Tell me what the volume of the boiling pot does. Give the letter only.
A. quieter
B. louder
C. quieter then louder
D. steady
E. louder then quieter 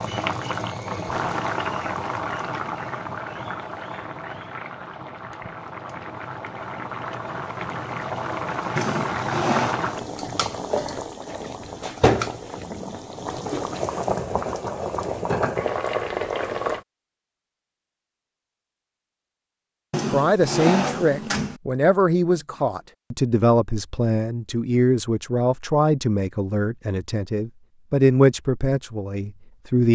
C.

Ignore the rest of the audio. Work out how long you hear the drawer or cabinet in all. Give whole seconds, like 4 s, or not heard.
3 s.